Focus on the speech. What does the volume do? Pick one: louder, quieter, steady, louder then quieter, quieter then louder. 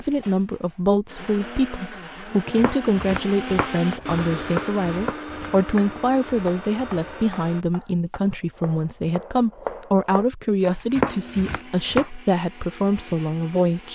steady.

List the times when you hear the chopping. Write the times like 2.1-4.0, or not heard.
2.5-12.1.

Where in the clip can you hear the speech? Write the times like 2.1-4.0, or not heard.
0.0-13.8.